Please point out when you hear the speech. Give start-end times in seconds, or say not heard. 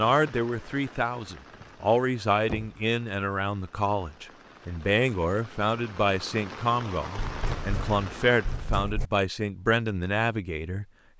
0.0-11.1.